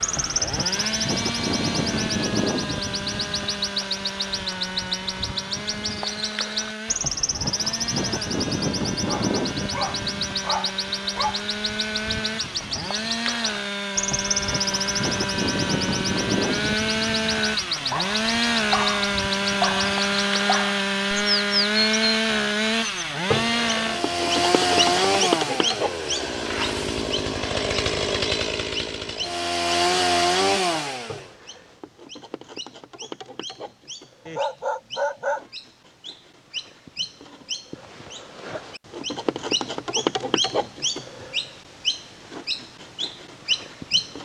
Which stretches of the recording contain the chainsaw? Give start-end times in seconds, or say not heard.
0.0-31.3.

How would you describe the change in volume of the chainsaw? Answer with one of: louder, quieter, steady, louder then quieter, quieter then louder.
louder.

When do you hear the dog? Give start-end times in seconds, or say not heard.
9.1-11.4, 17.9-20.8, 34.2-35.5.